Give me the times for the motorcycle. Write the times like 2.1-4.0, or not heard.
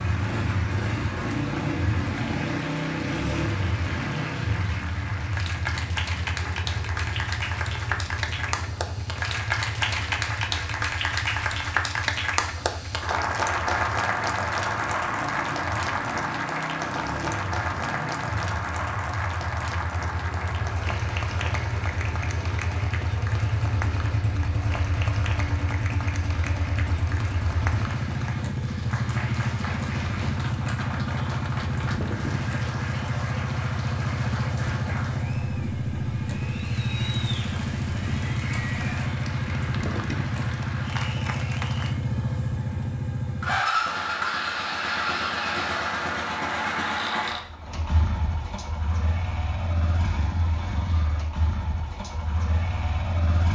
0.0-53.4.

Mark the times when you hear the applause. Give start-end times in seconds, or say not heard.
0.0-42.0.